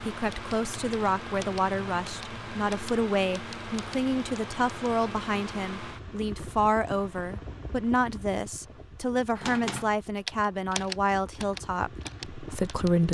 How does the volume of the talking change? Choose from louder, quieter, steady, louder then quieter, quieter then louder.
steady.